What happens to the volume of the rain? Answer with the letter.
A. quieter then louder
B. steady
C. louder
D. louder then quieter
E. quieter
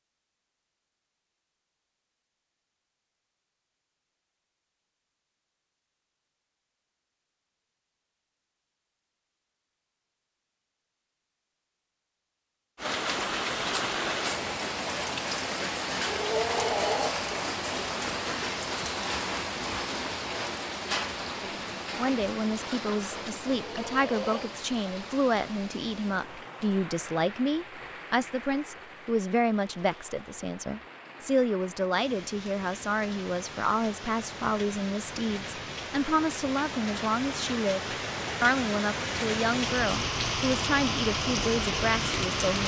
A.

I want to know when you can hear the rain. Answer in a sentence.
The rain can be heard from 12.8 to 42.6 s.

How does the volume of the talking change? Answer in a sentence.
The loudness of the talking stays about the same.